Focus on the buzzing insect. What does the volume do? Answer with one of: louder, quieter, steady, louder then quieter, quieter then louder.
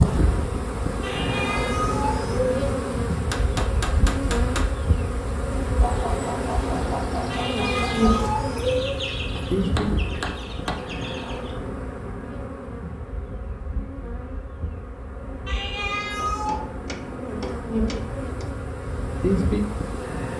quieter then louder.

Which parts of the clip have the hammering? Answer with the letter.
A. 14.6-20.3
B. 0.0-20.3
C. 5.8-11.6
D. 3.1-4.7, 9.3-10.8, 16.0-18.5
D.